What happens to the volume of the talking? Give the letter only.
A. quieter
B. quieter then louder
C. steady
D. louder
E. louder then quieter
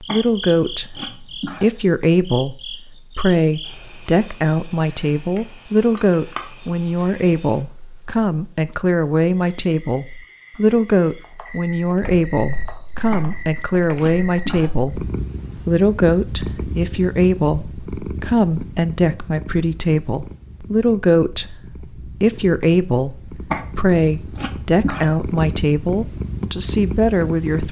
C.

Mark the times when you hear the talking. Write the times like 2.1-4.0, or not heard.
0.0-27.6.